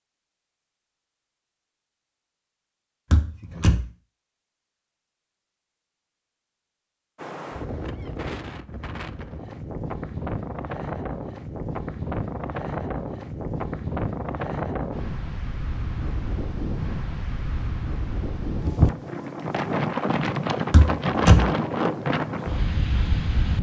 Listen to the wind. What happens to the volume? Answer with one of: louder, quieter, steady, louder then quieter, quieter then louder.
louder.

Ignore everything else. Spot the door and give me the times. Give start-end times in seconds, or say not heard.
3.1-3.9, 20.7-21.5.